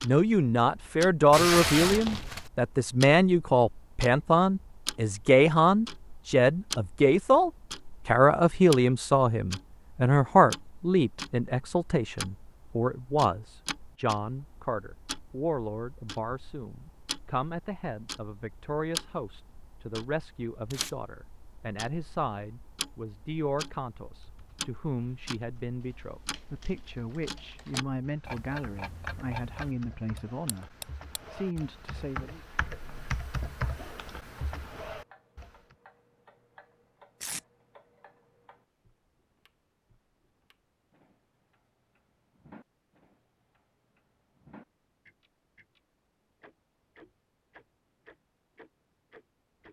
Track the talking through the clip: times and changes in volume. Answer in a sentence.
You can hear the talking from 0.0 to 30.7 s, getting quieter; and briefly from 31.3 to 32.4 s.